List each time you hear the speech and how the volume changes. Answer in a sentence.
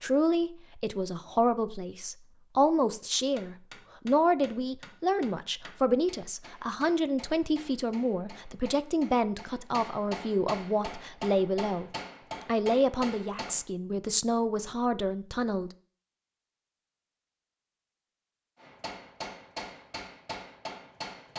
The speech can be heard from 0.0 to 15.7 s, at a steady volume.